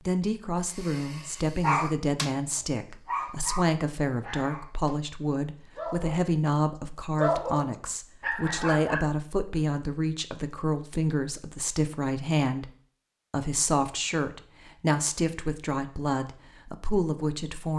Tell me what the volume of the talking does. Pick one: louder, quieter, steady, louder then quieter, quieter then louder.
steady.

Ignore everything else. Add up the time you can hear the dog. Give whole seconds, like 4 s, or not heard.
6 s.